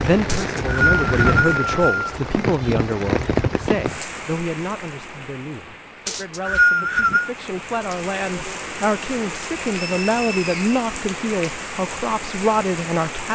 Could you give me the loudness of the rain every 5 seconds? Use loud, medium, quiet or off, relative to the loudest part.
loud, medium, medium.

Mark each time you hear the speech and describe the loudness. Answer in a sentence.
The speech can be heard from 0.0 to 13.2 s, getting quieter then louder.